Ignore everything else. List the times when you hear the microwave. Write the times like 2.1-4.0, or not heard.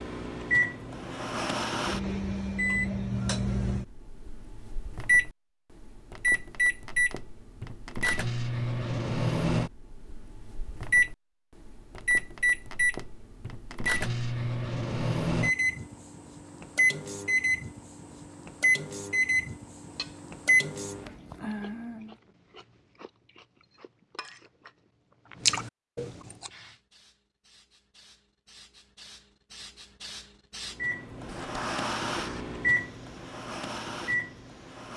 0.0-22.1, 30.8-34.9.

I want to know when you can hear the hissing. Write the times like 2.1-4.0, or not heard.
26.4-34.9.